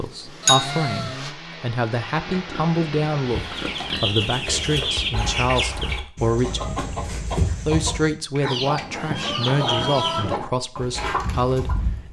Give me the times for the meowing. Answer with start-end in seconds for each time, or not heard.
0.5-1.1, 8.6-10.4.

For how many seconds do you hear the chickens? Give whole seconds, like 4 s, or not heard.
9 s.